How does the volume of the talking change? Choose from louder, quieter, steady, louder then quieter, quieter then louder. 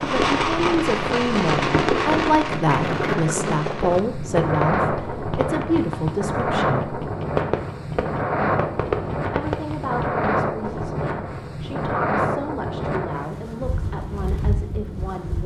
quieter.